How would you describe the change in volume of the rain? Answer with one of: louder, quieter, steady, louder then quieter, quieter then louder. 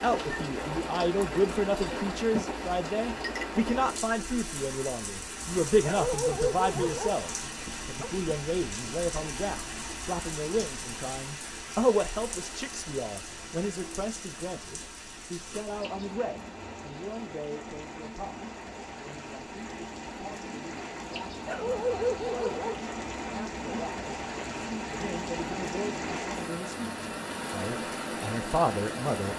quieter then louder.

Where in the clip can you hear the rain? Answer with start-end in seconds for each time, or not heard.
0.0-29.3.